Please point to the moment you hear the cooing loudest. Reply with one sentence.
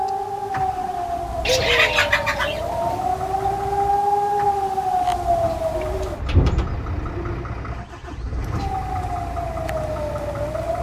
The volume of the cooing peaks at 2 seconds.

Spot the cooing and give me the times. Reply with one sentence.
You can hear the cooing from 1.4 to 3.0 s and from 5.8 to 7.5 s.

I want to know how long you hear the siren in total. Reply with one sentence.
The siren can be heard for 8 seconds in total.